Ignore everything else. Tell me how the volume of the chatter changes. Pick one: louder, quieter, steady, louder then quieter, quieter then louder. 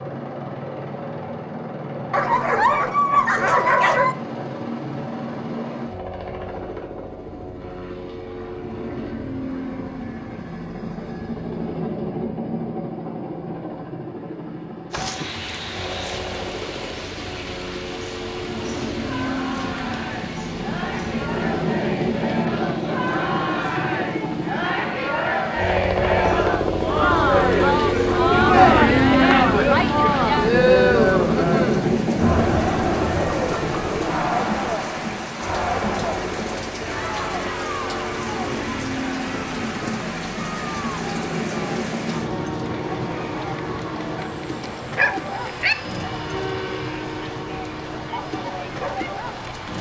louder then quieter.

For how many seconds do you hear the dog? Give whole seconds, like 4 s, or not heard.
4 s.